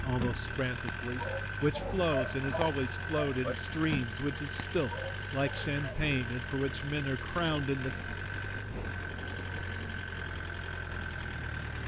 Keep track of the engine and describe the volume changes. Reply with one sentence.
The loudness of the engine stays about the same.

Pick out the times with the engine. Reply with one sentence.
The engine can be heard from 0.0 to 11.8 s.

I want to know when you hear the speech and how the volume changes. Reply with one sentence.
The speech can be heard from 0.0 to 8.0 s, at a steady volume.